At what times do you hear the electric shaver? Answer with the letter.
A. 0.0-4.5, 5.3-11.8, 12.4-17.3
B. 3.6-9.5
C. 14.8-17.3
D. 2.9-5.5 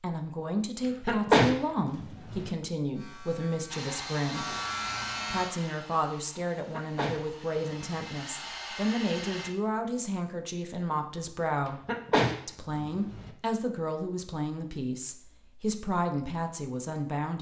D.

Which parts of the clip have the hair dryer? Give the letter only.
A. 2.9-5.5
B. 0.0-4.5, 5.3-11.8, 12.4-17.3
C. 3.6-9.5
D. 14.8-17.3
C.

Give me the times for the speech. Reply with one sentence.
The speech can be heard from 0.0 to 4.5 s, from 5.3 to 11.8 s and from 12.4 to 17.3 s.